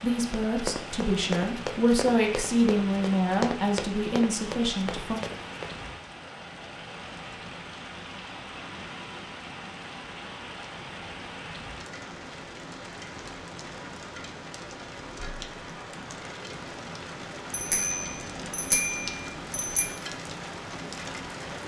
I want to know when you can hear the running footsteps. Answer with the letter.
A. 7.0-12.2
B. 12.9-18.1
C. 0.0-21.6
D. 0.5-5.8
D.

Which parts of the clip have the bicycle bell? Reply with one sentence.
You can hear the bicycle bell from 17.5 to 19.9 s.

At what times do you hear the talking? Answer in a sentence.
The talking can be heard from 0.0 to 5.2 s.